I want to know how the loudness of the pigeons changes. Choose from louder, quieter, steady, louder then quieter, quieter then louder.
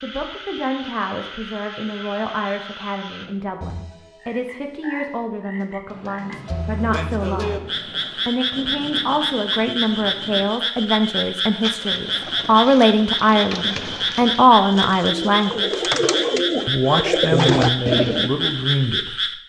louder.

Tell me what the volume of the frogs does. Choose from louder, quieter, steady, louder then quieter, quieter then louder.
louder.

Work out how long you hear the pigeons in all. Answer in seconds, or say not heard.
7 s.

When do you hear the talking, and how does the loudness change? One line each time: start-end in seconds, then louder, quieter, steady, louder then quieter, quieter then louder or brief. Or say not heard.
0.0-15.8 louder
16.6-19.4 brief.